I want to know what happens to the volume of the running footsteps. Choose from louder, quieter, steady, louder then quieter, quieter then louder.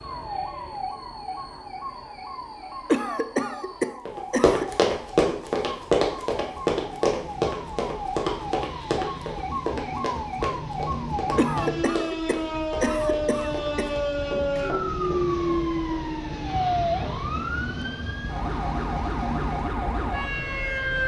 quieter.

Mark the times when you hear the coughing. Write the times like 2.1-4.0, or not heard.
2.9-4.8, 11.3-13.9.